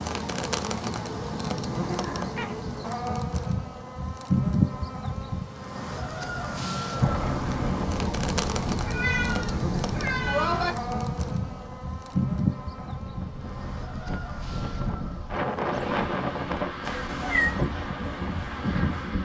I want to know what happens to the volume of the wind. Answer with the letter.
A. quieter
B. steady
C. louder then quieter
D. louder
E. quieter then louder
E.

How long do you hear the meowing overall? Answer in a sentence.
The meowing can be heard for 4 seconds in total.